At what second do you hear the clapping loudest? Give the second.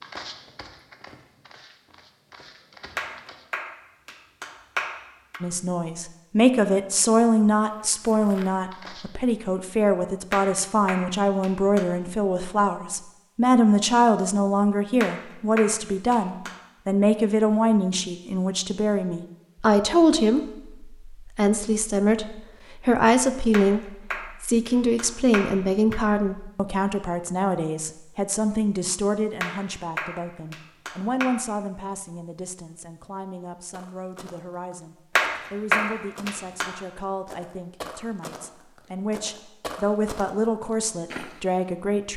36 s.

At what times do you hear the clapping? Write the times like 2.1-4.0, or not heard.
3.0-5.4, 10.3-11.8, 15.0-16.6, 23.5-26.1, 29.4-31.3, 35.1-36.7.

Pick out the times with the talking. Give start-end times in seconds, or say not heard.
5.4-42.1.